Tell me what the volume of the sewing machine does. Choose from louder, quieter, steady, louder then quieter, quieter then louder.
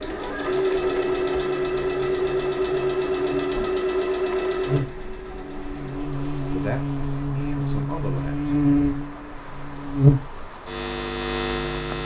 quieter.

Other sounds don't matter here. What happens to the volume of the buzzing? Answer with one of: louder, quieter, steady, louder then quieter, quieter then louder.
louder.